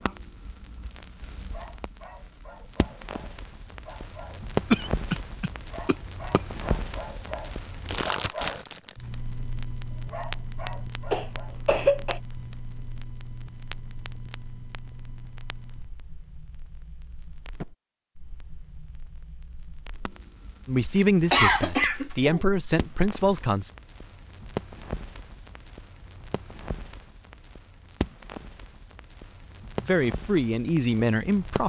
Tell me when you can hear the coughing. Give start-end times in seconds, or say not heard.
4.7-6.4, 11.1-12.2, 21.3-22.4.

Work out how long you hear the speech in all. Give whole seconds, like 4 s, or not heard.
5 s.